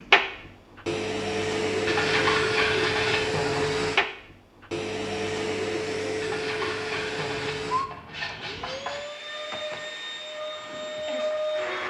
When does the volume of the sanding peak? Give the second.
2 s.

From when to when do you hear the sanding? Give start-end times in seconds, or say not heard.
1.9-3.6, 6.2-9.0.